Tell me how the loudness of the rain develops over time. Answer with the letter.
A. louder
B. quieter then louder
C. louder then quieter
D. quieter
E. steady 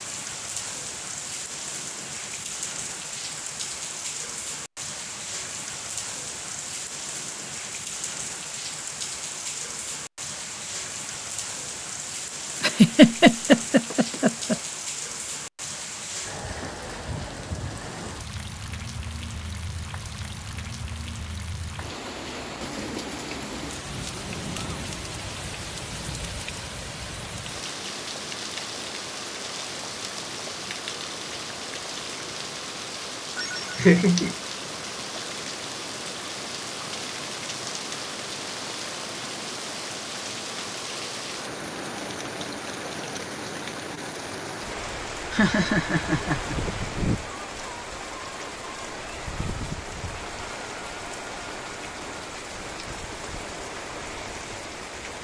E.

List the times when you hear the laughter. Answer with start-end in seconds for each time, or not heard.
12.6-14.6, 33.4-34.4, 45.3-46.5.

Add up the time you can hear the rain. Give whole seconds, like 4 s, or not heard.
55 s.